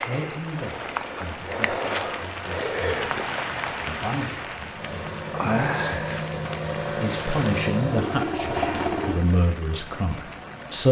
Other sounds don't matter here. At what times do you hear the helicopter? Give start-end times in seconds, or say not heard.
4.7-9.2.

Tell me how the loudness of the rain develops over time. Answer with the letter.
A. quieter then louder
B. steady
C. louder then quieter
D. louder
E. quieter
E.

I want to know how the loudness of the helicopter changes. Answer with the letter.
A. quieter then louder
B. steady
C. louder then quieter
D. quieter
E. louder
E.